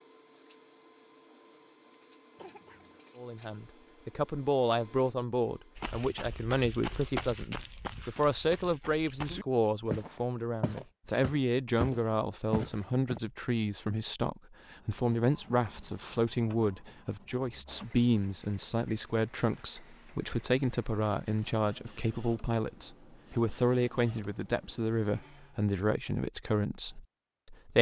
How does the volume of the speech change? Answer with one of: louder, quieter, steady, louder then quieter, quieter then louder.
steady.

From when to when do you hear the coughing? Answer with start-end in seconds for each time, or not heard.
2.4-3.0.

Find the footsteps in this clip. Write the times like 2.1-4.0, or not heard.
5.8-13.2.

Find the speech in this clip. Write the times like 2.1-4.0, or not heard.
3.1-27.7.